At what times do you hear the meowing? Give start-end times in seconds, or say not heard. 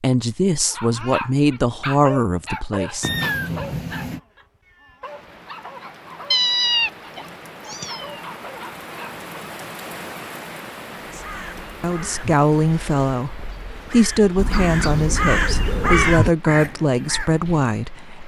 3.0-4.2, 6.3-8.2, 14.3-16.4.